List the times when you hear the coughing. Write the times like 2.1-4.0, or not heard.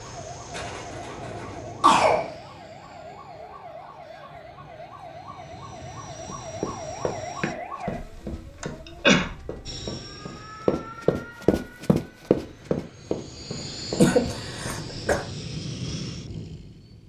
0.6-2.3, 8.6-9.2, 13.9-15.2.